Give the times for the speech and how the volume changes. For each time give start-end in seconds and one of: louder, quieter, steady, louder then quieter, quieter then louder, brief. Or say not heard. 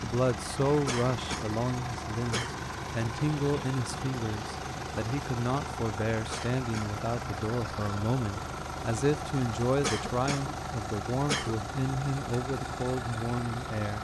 0.0-13.9 steady.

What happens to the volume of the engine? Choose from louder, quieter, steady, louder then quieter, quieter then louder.
steady.